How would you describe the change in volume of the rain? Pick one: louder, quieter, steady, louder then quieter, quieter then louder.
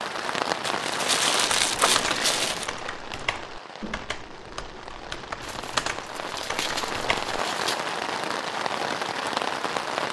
quieter then louder.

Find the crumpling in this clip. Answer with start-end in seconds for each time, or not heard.
0.6-2.7, 5.4-7.8.